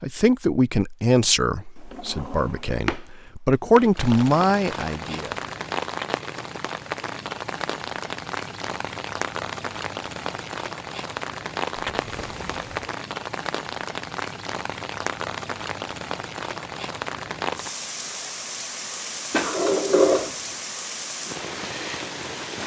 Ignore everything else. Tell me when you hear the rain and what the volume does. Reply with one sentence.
The rain can be heard from 4.0 to 22.6 s, at a steady volume.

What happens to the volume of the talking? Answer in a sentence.
The volume of the talking goes down, then up.